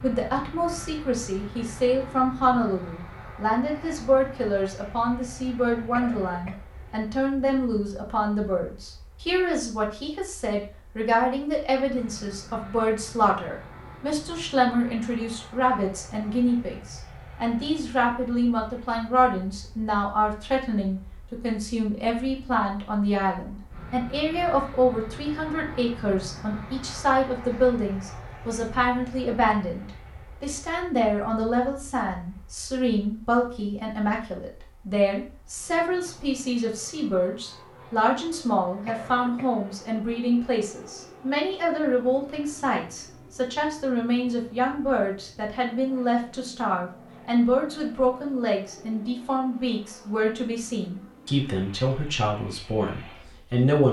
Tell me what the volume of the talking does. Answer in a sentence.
The loudness of the talking stays about the same.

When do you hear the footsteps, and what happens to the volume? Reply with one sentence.
The footsteps can't be heard in this clip.